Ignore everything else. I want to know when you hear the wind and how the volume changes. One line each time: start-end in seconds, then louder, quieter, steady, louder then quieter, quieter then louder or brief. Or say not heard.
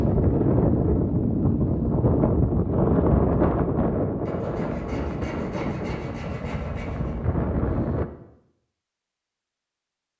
0.0-8.1 quieter.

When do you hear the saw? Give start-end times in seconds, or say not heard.
4.2-7.2.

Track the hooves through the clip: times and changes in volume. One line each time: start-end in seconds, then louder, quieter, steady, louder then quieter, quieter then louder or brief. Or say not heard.
not heard.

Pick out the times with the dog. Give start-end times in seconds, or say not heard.
not heard.